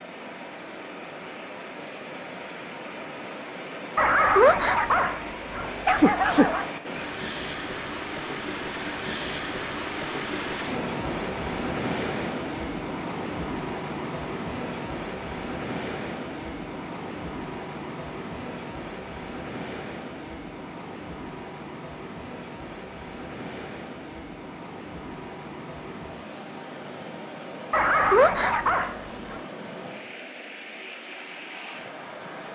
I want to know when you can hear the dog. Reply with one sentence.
You can hear the dog from 4.0 to 6.7 s and from 27.7 to 29.4 s.